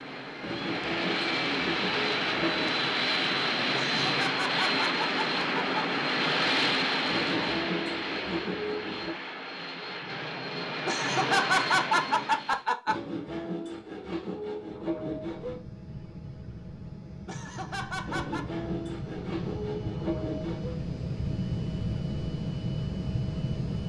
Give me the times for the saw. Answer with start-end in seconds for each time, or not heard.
0.4-2.8, 7.0-9.2, 12.8-15.6, 18.1-20.8.